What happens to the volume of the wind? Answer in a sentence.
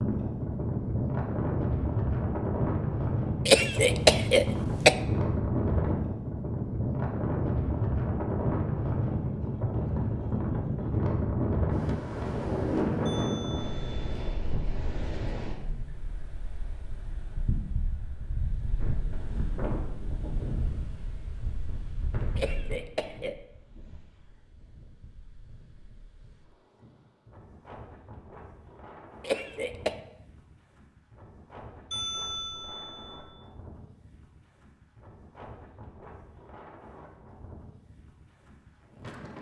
The volume of the wind goes down.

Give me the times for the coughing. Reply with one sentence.
You can hear the coughing from 3.5 to 5.0 s, from 22.4 to 23.4 s and from 29.2 to 30.0 s.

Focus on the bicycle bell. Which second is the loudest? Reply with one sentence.
The volume of the bicycle bell peaks at 32 seconds.